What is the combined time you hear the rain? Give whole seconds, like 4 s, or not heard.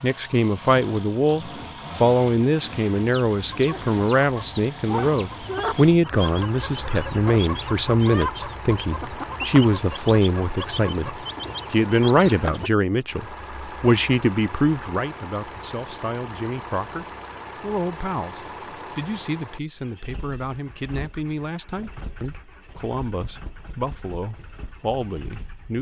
not heard.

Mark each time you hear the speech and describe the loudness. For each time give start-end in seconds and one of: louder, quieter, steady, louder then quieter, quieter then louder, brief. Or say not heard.
0.0-25.7 quieter.